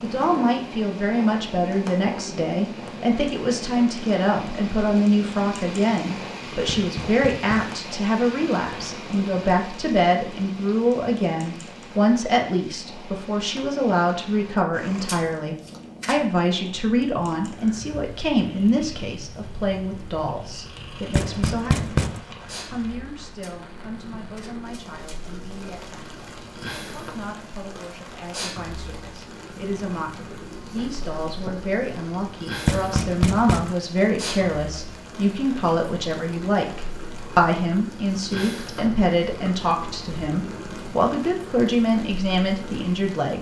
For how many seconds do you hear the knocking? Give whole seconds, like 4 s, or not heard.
3 s.